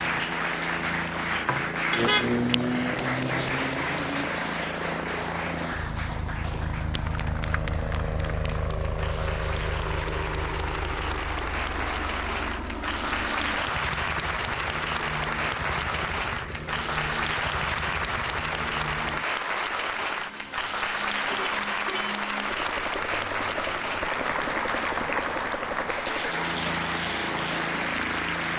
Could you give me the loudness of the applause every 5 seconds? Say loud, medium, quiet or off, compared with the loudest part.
loud, medium, loud, loud, loud, loud.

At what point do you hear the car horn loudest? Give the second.
2 s.